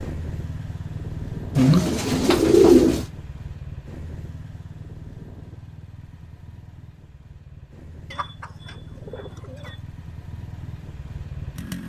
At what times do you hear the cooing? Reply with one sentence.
The cooing can be heard from 1.6 to 3.0 s and from 8.1 to 9.8 s.